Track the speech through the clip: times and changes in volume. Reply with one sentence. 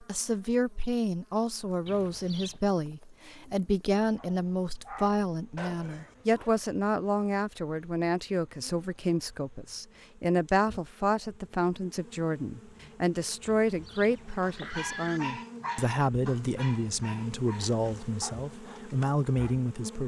You can hear the speech from 0.0 to 20.0 s, at a steady volume.